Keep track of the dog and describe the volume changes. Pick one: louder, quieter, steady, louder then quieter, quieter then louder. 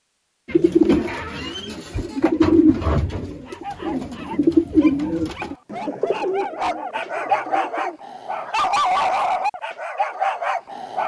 louder.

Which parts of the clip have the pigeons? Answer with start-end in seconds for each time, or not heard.
0.5-8.0.